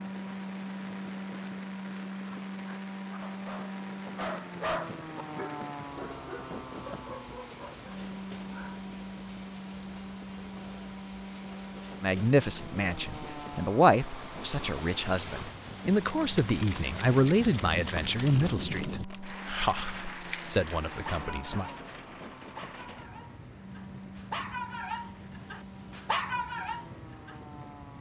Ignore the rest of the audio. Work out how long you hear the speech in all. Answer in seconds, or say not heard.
10 s.